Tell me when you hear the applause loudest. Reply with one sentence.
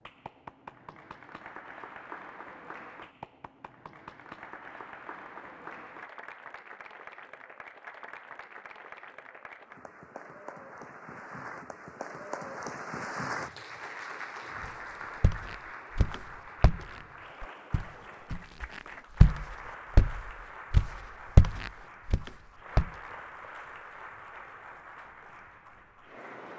The loudest moment of the applause is at 13 seconds.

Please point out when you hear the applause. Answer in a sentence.
You can hear the applause from 0.0 to 26.5 s.